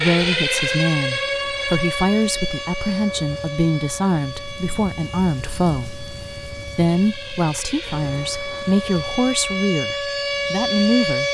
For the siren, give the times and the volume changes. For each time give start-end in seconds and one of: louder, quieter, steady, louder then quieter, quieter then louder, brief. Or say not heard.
0.0-11.2 quieter then louder.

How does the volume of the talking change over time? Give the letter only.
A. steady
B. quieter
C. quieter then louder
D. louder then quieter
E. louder
A.